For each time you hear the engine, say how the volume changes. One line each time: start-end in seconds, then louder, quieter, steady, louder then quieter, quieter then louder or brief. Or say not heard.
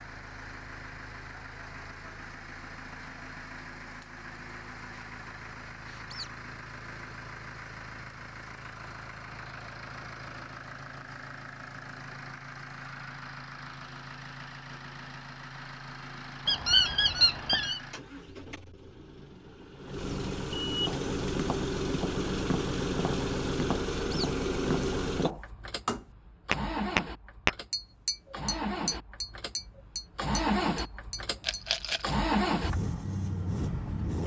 0.0-34.2 louder.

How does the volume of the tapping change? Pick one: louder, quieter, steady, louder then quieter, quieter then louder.
louder then quieter.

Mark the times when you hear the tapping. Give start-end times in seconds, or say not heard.
20.9-31.6.